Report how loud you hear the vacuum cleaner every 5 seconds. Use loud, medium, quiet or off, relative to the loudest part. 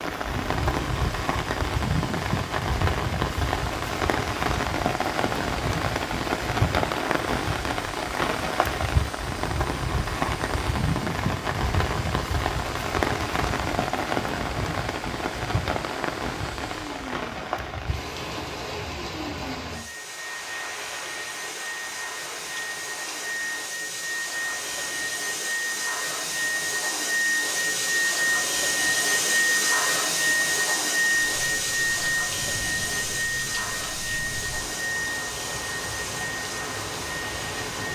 quiet, quiet, quiet, quiet, medium, loud, loud, medium.